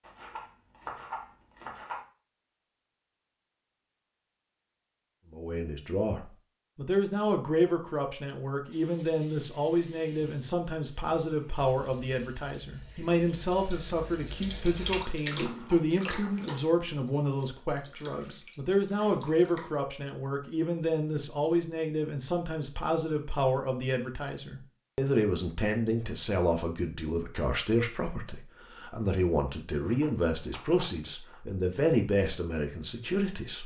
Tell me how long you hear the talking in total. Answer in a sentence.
The talking can be heard for 28 seconds in total.